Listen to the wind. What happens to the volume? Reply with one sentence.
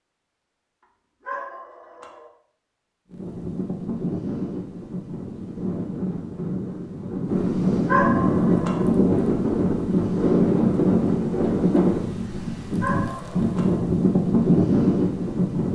The loudness of the wind goes up.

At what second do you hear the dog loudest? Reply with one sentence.
The loudest moment of the dog is at 8 seconds.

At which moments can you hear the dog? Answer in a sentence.
You can hear the dog from 1.2 to 2.3 s, from 7.8 to 8.9 s and from 12.8 to 13.8 s.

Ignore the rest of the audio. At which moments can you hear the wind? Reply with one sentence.
The wind can be heard from 3.1 to 15.6 s.